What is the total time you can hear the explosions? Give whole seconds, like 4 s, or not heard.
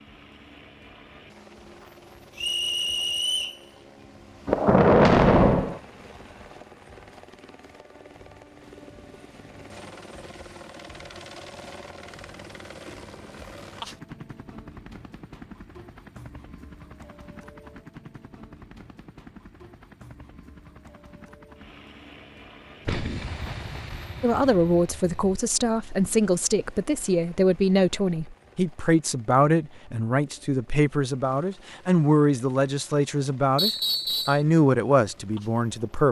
4 s.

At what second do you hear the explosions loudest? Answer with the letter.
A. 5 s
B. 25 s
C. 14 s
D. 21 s
A.